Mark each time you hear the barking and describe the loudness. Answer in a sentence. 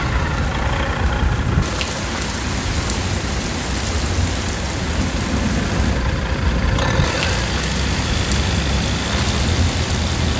The barking can't be heard in this clip.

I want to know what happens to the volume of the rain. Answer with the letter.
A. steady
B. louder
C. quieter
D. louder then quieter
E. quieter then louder
A.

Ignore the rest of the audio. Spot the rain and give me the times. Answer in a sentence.
You can hear the rain from 0.0 to 10.3 s.